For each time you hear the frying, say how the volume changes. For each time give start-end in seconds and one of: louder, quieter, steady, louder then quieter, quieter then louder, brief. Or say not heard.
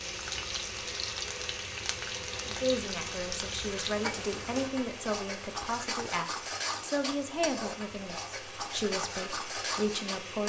0.0-10.4 steady.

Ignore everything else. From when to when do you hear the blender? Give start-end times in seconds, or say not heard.
0.0-10.4.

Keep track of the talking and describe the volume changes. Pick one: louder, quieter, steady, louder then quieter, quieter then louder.
steady.